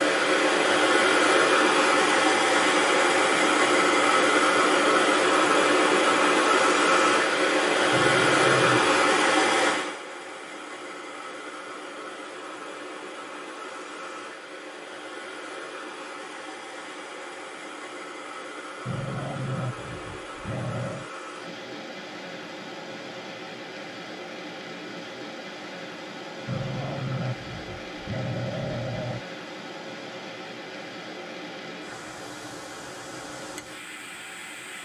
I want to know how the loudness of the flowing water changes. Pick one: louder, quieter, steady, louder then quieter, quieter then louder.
quieter.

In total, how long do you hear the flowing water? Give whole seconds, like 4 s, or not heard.
35 s.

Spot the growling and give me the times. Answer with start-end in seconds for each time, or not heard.
7.9-9.1, 18.9-21.1, 26.4-29.2.